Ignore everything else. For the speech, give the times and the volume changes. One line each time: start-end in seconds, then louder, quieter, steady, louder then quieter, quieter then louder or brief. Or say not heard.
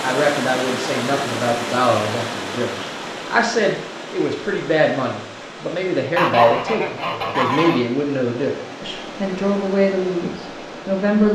0.0-11.3 steady.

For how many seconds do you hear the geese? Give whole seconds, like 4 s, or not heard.
2 s.